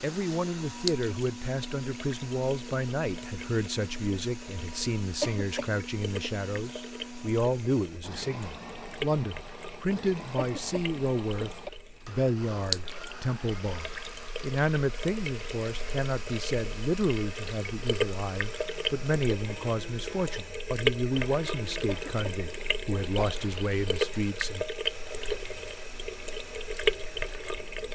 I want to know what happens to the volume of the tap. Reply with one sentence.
The loudness of the tap goes up.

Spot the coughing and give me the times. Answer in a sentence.
The coughing can be heard from 5.2 to 6.3 s, from 10.3 to 11.7 s and from 21.9 to 23.4 s.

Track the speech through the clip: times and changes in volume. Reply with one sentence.
The speech can be heard from 0.0 to 24.6 s, at a steady volume.